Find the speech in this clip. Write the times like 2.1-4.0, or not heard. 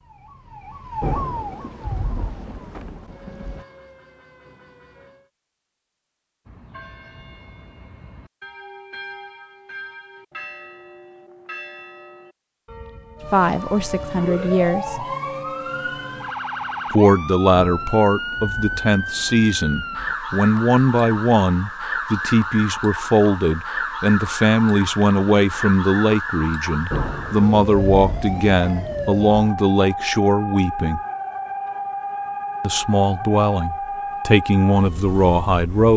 13.3-15.1, 16.9-31.0, 32.6-35.9.